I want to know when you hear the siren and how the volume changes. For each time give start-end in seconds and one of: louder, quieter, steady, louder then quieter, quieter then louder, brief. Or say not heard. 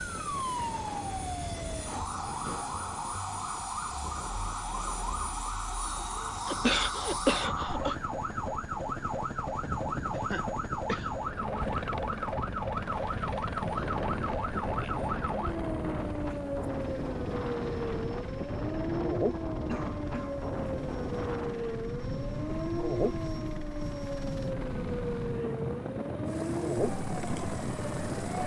0.0-28.4 steady.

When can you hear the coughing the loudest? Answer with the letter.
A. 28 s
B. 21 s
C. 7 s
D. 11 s
C.